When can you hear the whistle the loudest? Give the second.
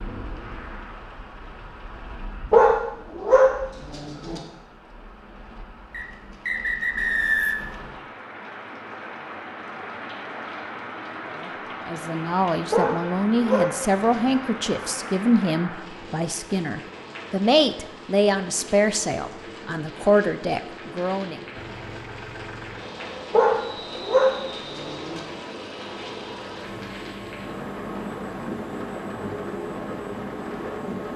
7 s.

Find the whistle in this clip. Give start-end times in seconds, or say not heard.
5.9-7.8, 23.7-24.8.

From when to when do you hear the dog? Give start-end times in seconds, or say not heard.
2.5-4.4, 12.7-14.5, 23.3-25.2.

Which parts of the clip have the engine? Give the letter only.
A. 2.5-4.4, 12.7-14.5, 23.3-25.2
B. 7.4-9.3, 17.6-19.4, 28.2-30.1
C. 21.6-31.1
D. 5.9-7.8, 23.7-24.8
C.